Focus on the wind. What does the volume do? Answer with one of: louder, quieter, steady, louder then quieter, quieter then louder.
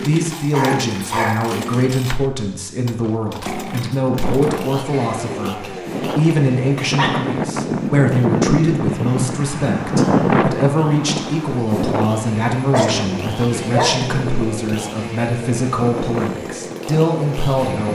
louder then quieter.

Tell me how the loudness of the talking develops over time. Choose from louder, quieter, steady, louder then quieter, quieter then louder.
steady.